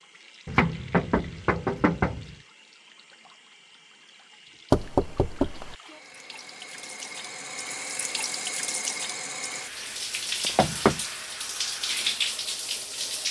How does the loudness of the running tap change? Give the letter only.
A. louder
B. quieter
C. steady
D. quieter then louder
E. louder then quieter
A.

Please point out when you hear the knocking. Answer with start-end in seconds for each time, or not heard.
0.5-2.4, 4.7-5.8, 10.4-11.0.